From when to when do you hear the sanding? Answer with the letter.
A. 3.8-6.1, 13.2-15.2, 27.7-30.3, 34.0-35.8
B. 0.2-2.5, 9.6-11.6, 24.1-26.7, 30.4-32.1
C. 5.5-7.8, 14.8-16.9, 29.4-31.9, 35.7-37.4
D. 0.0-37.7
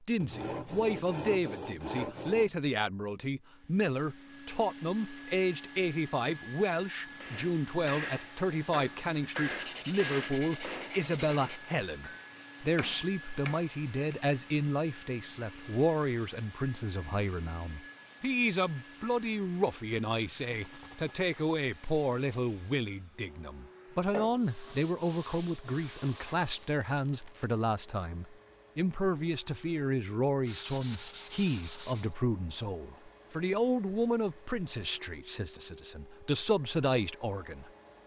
B.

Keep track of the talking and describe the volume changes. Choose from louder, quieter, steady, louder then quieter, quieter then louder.
steady.